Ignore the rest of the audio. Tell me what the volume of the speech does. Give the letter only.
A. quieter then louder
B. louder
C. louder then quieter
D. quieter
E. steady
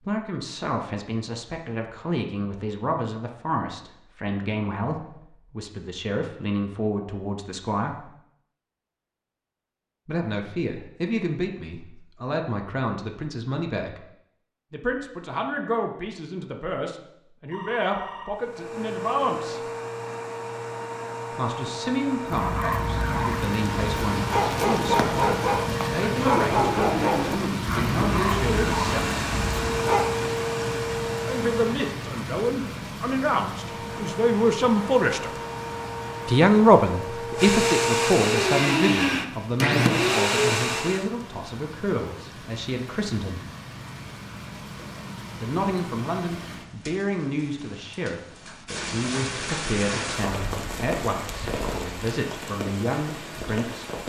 C.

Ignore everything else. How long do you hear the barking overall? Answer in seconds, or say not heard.
8 s.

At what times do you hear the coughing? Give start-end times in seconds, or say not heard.
not heard.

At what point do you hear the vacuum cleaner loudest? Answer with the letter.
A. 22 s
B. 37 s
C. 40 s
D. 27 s
C.